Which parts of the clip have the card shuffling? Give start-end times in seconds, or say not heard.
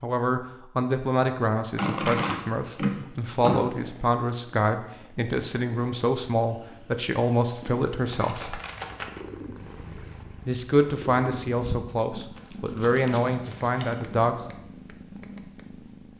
1.8-3.6, 8.1-9.2, 12.3-13.9.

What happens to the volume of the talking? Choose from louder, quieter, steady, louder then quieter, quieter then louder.
steady.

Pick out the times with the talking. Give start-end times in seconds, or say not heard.
0.0-8.6, 10.4-14.3.